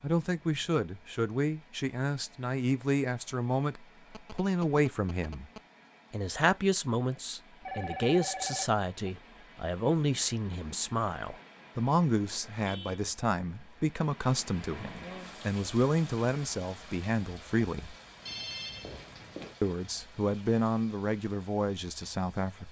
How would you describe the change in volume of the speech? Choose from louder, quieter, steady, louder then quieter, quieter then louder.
steady.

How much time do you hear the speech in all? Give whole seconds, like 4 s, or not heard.
20 s.